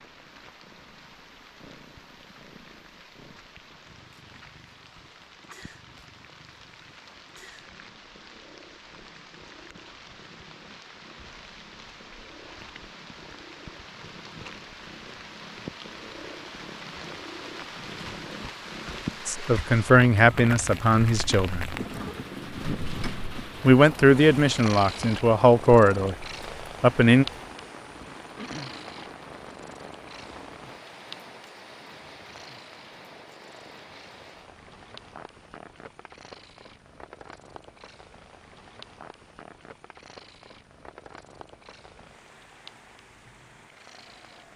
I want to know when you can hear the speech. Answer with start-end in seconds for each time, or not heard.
19.2-21.6, 23.6-27.2.